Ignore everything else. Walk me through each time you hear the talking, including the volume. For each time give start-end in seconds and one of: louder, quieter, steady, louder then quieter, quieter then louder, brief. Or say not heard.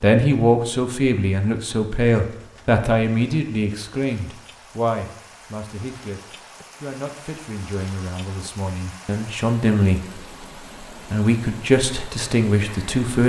0.0-10.2 quieter then louder
10.9-13.2 brief.